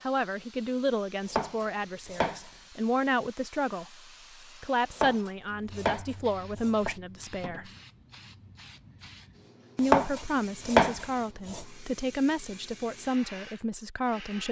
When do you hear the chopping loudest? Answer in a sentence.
The volume of the chopping peaks at 11 seconds.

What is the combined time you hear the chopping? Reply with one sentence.
The chopping can be heard for 5 seconds in total.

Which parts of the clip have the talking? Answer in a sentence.
You can hear the talking from 0.0 to 4.0 s, from 4.6 to 7.7 s and from 9.8 to 14.4 s.